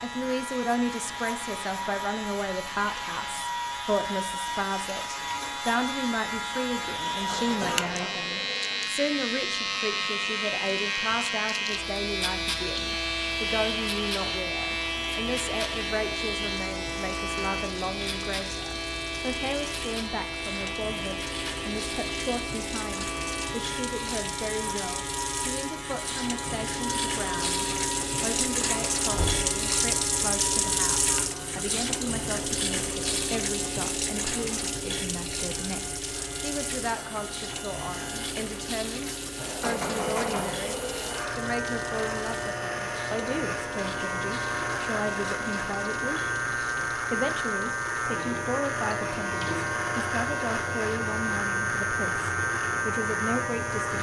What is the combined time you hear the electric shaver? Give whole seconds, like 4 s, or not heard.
54 s.